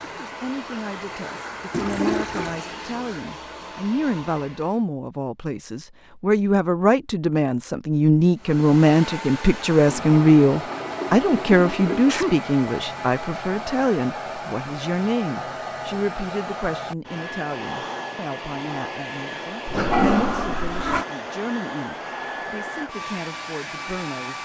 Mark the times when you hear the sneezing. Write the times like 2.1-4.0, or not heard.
11.9-12.4.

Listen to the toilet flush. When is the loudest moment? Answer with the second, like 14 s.
20 s.